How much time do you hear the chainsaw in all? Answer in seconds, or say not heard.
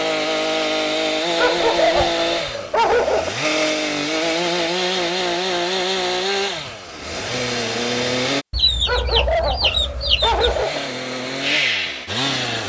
11 s.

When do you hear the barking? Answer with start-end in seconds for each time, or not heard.
1.4-3.3, 8.8-10.8.